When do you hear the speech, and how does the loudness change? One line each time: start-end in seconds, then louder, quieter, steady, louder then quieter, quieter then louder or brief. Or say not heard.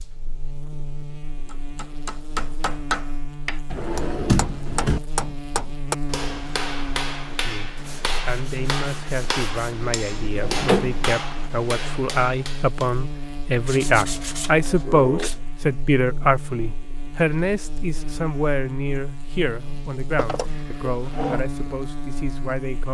7.2-22.8 louder then quieter.